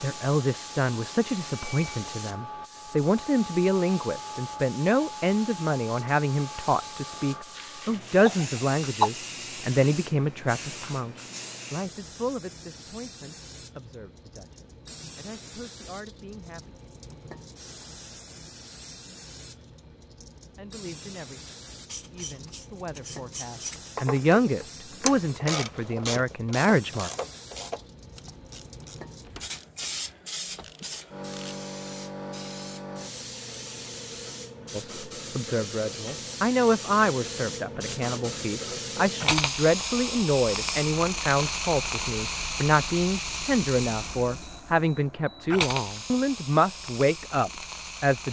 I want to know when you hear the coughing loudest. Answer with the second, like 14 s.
9 s.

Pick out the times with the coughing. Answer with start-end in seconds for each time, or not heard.
7.5-9.1.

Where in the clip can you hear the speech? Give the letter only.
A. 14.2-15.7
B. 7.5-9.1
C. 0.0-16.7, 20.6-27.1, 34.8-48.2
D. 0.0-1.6
C.